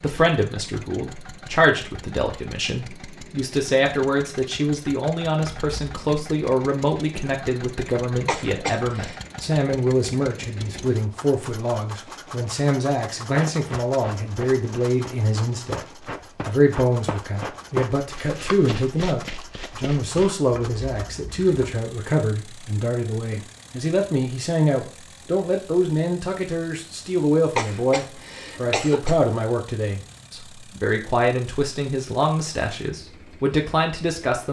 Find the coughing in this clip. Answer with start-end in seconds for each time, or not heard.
8.2-9.2, 27.6-29.1.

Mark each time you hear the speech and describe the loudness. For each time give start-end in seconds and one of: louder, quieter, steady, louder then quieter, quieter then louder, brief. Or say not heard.
0.0-15.8 steady
16.4-34.4 steady.